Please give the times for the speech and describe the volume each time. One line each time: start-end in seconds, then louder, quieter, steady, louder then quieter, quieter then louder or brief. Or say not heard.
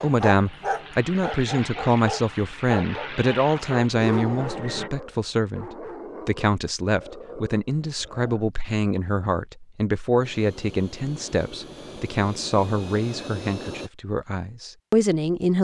0.0-15.5 steady.